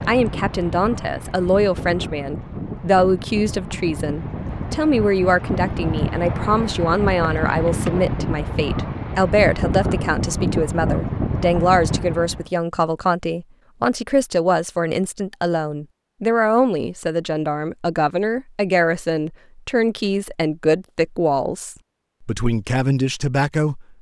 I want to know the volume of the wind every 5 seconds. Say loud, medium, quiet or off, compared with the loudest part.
medium, loud, loud, off, off.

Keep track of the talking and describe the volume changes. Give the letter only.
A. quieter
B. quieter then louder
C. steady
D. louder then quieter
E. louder
C.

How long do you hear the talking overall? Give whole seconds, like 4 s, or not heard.
24 s.